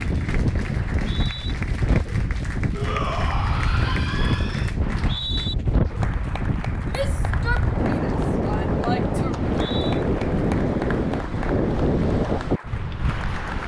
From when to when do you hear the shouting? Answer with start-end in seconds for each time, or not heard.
2.7-4.7, 6.8-9.4.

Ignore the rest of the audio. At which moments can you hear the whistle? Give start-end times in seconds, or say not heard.
0.9-1.6, 4.8-5.5, 9.3-10.1.